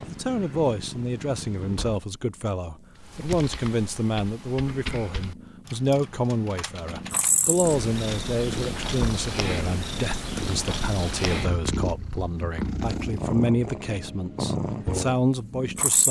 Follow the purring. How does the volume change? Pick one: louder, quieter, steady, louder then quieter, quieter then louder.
quieter then louder.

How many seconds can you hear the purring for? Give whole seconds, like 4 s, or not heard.
16 s.